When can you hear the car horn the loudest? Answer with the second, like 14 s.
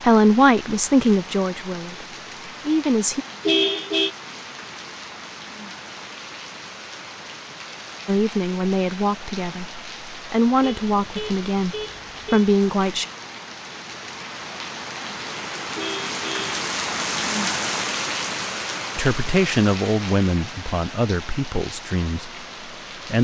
4 s.